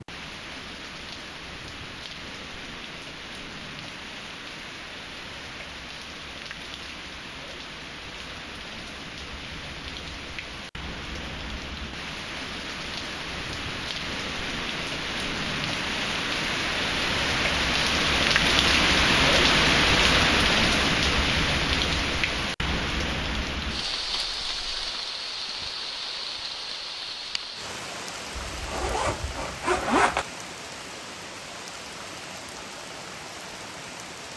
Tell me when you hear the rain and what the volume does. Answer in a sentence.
You can hear the rain from 0.0 to 34.3 s, getting louder then quieter.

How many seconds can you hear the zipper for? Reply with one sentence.
The zipper can be heard for 2 seconds in total.